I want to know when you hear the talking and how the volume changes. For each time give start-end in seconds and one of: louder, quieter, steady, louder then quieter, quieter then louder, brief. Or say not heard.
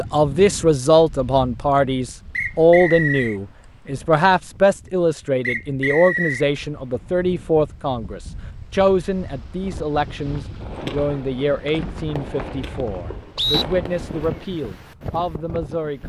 0.0-16.0 quieter.